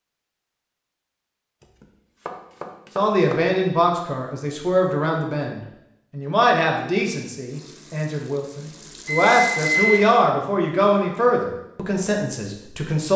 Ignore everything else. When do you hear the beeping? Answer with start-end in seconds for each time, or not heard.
9.1-10.2.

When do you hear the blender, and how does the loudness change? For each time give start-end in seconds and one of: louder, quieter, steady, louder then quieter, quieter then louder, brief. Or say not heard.
not heard.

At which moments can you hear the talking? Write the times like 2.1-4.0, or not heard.
3.0-13.1.